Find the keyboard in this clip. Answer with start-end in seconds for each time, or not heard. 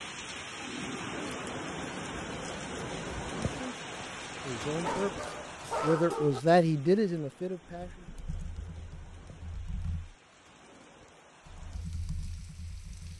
7.7-10.2, 11.4-13.1.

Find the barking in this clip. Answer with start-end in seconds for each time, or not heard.
4.8-6.4.